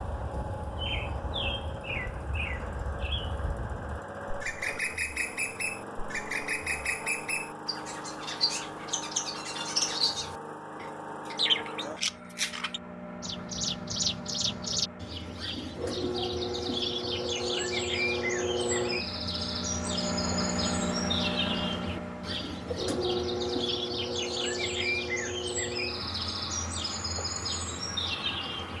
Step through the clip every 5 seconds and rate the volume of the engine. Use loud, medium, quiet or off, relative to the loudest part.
medium, medium, medium, loud, loud, medium.